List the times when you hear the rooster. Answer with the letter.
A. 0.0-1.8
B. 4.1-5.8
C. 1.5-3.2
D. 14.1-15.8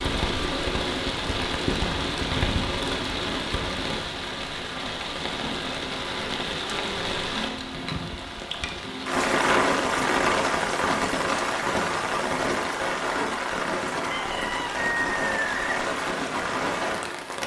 D.